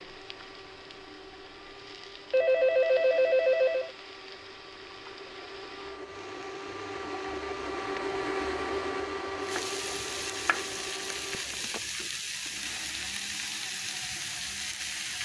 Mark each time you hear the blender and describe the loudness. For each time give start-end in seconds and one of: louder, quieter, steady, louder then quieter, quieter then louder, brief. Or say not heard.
0.0-15.1 louder then quieter.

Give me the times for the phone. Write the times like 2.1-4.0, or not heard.
2.3-3.9, 11.3-11.8.